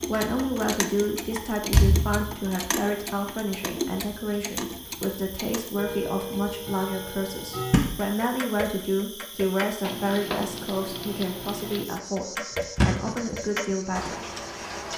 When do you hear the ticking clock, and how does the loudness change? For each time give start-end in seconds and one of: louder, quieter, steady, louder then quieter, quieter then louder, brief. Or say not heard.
0.0-14.9 steady.